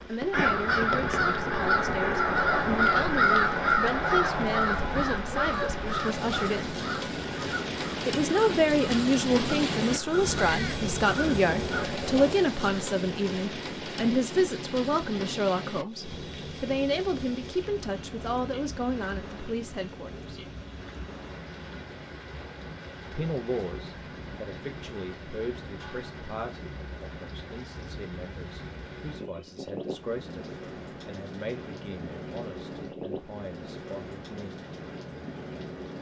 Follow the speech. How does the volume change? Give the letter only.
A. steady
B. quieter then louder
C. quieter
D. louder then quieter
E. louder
D.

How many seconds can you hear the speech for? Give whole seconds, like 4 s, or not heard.
31 s.